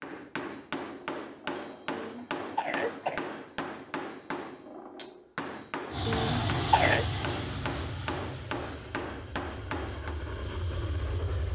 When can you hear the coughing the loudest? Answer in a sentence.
The loudest moment of the coughing is at 7 seconds.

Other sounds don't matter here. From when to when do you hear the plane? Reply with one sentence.
You can hear the plane from 5.9 to 11.4 s.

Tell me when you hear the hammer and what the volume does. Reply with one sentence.
The hammer can be heard from 0.0 to 10.2 s, at a steady volume.